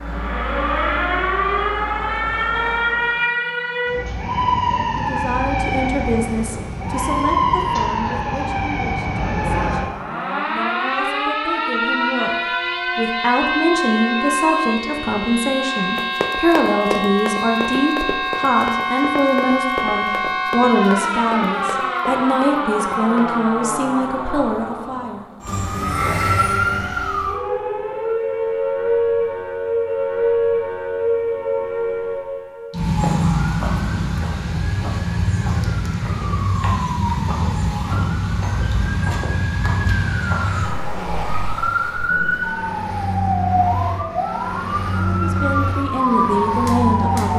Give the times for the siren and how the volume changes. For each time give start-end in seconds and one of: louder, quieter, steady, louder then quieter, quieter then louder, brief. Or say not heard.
0.0-47.3 steady.